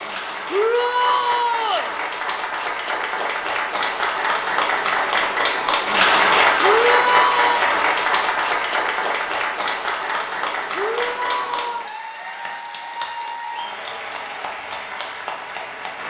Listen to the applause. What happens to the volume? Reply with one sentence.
The loudness of the applause goes up, then down.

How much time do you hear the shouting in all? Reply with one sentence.
The shouting can be heard for 4 seconds in total.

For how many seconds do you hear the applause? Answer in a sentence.
The applause can be heard for 16 seconds in total.